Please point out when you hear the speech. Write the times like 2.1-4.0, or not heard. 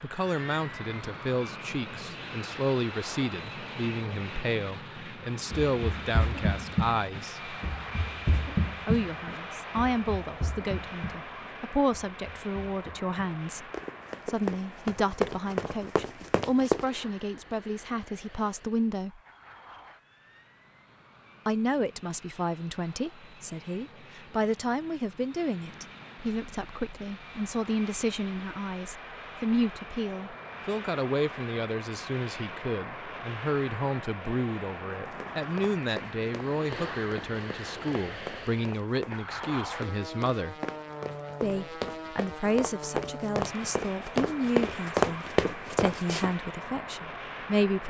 0.0-7.5, 8.8-19.2, 21.4-40.5, 41.4-47.8.